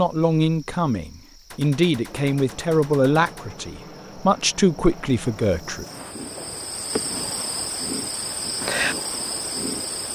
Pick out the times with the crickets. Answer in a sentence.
You can hear the crickets from 0.0 to 10.0 s.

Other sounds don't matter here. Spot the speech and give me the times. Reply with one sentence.
You can hear the speech from 0.0 to 5.8 s.